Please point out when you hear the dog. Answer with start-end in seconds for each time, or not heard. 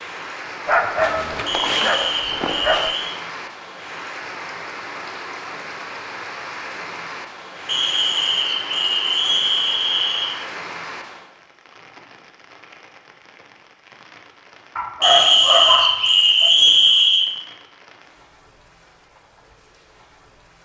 0.7-3.0, 14.8-16.5.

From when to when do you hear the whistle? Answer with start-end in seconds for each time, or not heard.
1.4-3.1, 7.7-10.3, 15.0-17.2.